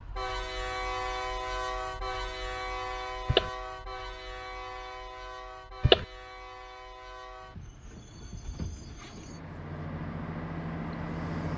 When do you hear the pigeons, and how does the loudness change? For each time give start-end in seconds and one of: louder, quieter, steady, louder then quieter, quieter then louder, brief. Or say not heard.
not heard.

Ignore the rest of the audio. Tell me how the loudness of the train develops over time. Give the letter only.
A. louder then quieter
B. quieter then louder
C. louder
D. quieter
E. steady
B.